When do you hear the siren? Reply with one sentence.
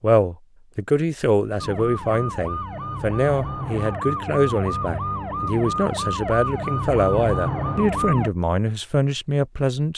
You can hear the siren from 1.6 to 8.3 s.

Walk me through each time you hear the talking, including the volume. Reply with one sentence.
You can hear the talking from 0.0 to 9.9 s, at a steady volume.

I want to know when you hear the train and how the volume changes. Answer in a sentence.
The train can't be heard in this clip.